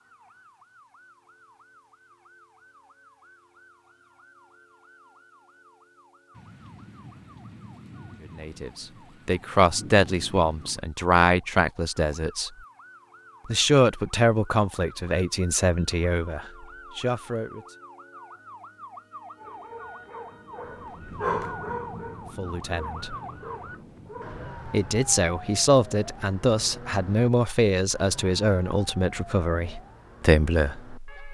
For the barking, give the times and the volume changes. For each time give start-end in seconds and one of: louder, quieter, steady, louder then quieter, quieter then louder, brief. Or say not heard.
19.4-24.4 louder then quieter.